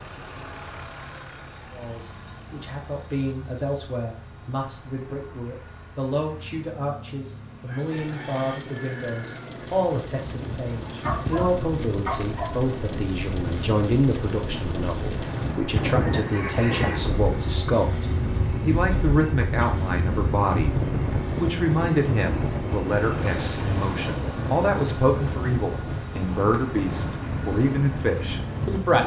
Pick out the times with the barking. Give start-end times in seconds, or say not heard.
11.0-12.6.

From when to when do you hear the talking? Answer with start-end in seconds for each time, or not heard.
1.7-20.8, 21.4-29.0.